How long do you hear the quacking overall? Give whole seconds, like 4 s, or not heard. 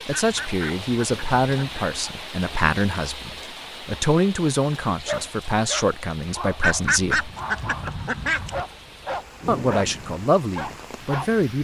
4 s.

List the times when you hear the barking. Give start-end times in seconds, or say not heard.
4.8-11.4.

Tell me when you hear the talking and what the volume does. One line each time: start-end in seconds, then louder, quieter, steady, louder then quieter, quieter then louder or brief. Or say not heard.
0.1-7.3 steady
9.4-11.5 brief.